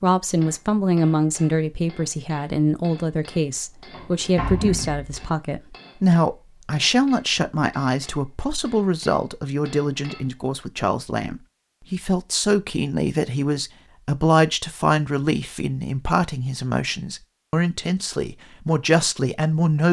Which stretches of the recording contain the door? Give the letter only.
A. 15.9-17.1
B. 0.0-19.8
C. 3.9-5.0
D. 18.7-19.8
C.